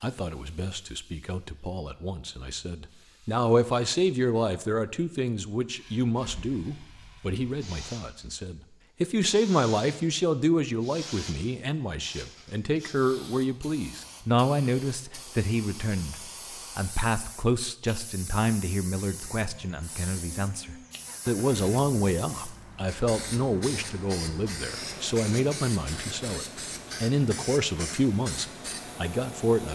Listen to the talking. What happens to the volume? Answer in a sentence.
The loudness of the talking stays about the same.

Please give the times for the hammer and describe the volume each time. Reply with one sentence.
You can't hear the hammer here.